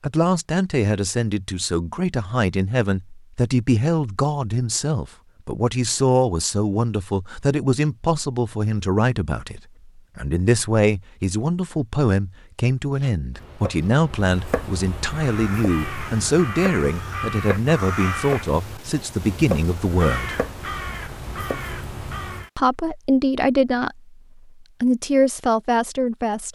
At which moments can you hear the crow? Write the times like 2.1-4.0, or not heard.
15.1-22.5.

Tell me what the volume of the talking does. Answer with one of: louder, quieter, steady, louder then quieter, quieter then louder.
steady.